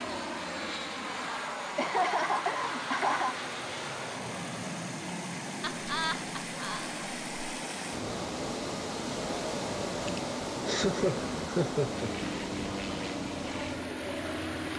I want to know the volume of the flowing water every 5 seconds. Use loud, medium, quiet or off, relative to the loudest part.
medium, loud, loud.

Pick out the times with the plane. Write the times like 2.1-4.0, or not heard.
0.0-14.7.